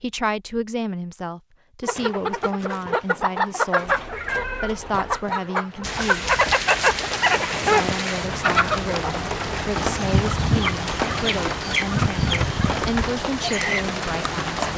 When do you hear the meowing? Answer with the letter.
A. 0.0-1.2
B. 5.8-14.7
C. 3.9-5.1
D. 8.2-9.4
C.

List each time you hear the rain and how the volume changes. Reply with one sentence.
You can hear the rain from 5.8 to 14.7 s, at a steady volume.